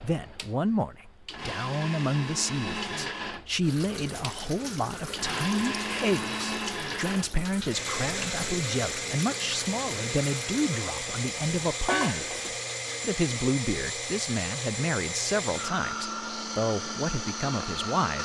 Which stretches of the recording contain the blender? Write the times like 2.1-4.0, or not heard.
0.0-18.2.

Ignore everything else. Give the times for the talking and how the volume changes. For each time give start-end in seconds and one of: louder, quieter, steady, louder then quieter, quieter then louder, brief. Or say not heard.
0.0-12.3 steady
13.0-18.2 steady.